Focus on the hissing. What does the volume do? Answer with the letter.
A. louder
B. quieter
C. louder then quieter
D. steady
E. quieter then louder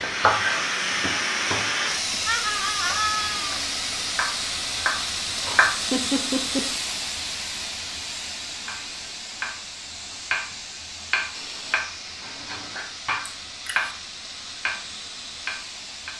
B.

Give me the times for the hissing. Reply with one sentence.
You can hear the hissing from 0.0 to 16.1 s.